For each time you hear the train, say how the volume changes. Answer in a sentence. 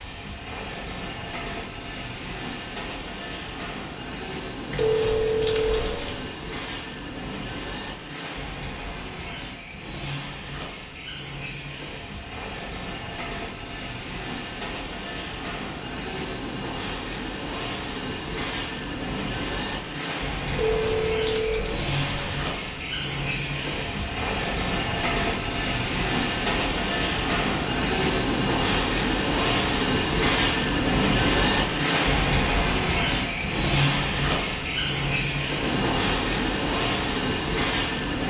The train can be heard from 0.0 to 38.2 s, getting louder.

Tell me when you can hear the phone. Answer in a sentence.
You can hear the phone from 4.7 to 6.2 s and from 20.5 to 22.4 s.